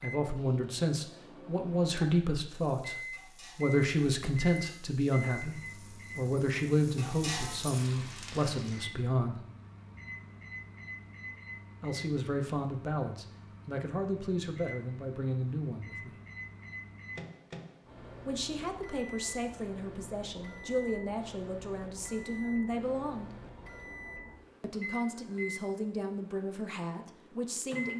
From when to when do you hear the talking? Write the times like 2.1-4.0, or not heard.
0.0-9.4, 11.8-16.1, 18.2-23.3, 24.6-27.9.